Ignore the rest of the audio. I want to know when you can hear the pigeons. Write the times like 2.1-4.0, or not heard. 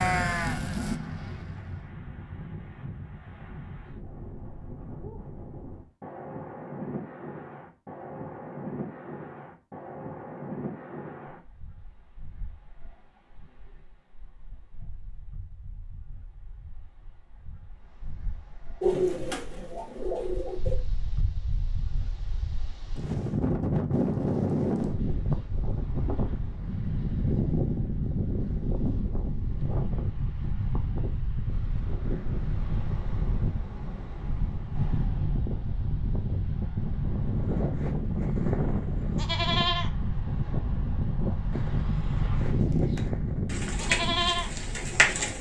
18.8-20.8, 42.6-45.3.